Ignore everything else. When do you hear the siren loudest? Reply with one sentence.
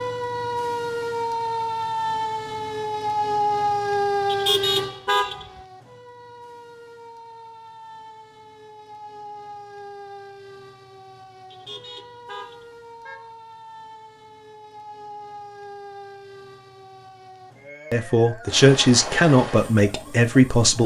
The volume of the siren peaks at 4 seconds.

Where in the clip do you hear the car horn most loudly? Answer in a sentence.
The volume of the car horn peaks at 5 seconds.